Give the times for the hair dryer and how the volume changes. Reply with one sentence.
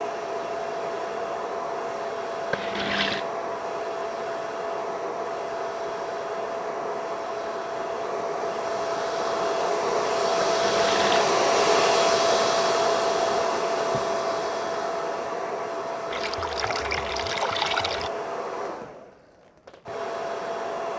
You can hear the hair dryer from 0.0 to 20.9 s, getting louder then quieter.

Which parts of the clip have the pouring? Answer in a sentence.
The pouring can be heard from 2.5 to 3.2 s, from 10.4 to 11.2 s and from 16.1 to 18.1 s.